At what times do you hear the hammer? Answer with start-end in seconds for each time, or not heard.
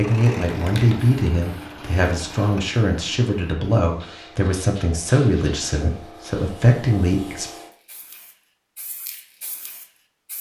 not heard.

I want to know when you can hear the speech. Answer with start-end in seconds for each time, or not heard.
0.0-7.5.